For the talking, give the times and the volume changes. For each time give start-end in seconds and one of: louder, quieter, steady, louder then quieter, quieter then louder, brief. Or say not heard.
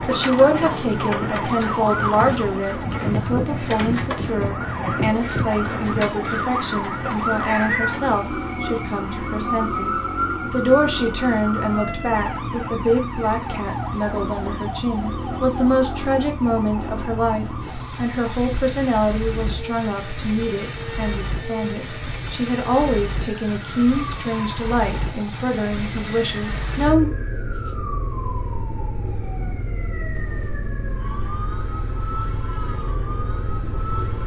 0.1-27.1 steady.